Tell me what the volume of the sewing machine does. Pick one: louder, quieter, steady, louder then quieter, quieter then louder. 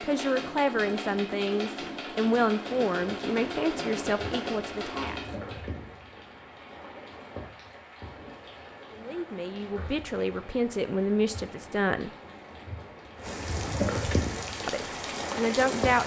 steady.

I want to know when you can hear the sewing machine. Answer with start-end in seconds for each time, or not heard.
0.0-5.8.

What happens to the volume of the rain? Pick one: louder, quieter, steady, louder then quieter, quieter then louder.
louder.